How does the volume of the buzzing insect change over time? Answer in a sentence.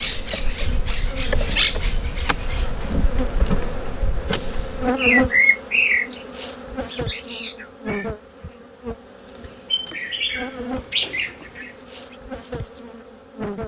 The volume of the buzzing insect goes up, then down.